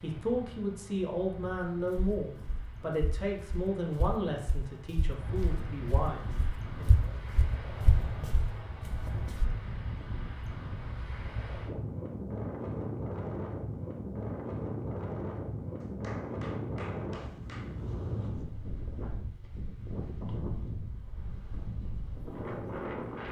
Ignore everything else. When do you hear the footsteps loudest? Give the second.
7 s.